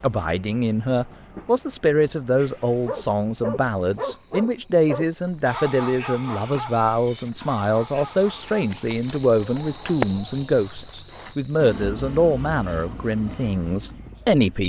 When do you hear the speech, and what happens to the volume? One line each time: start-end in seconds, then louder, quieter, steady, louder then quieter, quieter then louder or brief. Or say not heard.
0.0-14.6 steady.